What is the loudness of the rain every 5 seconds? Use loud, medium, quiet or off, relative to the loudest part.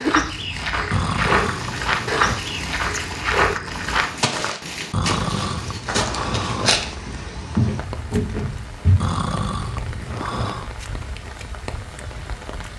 loud, medium, medium.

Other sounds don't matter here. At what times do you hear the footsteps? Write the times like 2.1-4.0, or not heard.
0.0-9.0.